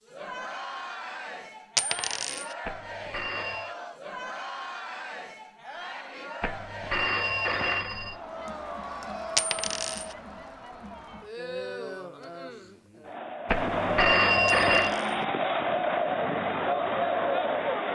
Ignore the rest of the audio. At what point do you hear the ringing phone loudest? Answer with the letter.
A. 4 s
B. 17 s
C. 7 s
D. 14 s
D.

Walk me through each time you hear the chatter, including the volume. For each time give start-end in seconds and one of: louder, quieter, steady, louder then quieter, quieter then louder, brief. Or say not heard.
0.0-17.8 louder.